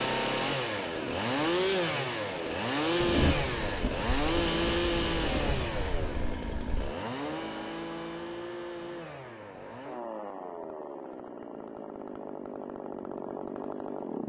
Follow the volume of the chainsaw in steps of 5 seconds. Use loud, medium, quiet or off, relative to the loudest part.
loud, medium, medium.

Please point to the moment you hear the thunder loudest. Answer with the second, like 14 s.
3 s.